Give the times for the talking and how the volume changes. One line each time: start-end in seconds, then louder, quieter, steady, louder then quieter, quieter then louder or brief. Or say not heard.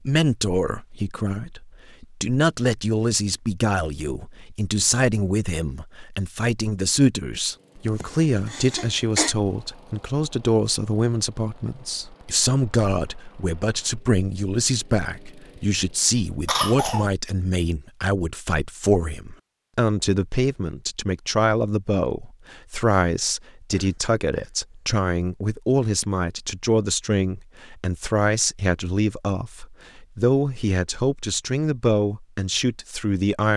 0.1-33.5 steady.